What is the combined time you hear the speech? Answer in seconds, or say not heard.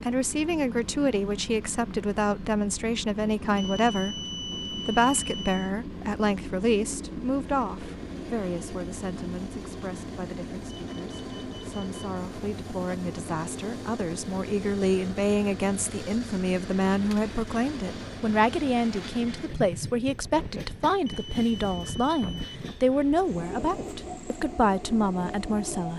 26 s.